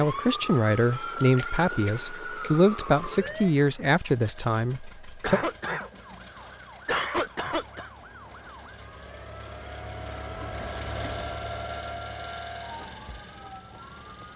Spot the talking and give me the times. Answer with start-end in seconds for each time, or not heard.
0.0-5.4.